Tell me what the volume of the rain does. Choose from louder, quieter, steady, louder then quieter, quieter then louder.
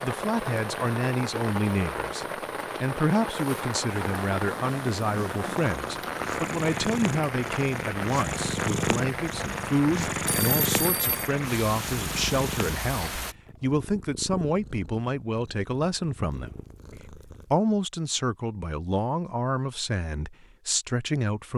steady.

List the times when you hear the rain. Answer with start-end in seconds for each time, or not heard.
0.0-13.3.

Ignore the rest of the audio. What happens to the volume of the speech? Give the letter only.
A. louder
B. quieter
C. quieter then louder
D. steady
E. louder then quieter
D.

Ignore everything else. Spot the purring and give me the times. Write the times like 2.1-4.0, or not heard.
4.0-17.6.